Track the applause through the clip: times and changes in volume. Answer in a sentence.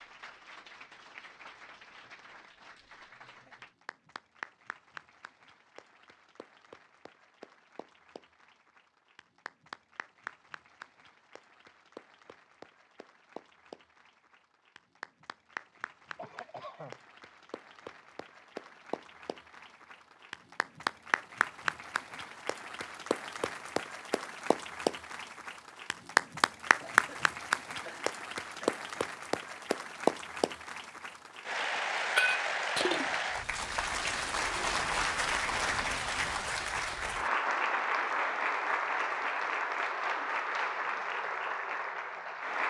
You can hear the applause from 0.0 to 42.6 s, getting louder.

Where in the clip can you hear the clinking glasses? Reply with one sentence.
The clinking glasses can be heard from 31.9 to 33.3 s.